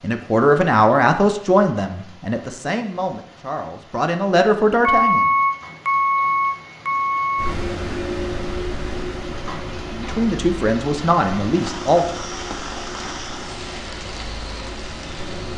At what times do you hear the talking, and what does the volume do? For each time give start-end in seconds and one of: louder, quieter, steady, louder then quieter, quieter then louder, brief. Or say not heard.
0.0-5.2 quieter then louder
9.9-12.2 brief.